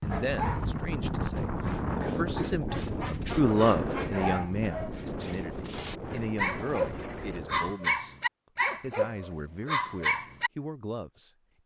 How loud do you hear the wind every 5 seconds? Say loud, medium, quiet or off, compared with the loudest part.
loud, medium, off.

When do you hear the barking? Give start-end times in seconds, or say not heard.
0.1-10.5.